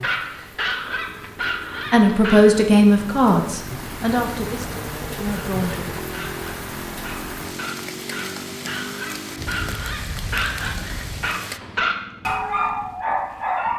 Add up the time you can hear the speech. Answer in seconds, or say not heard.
4 s.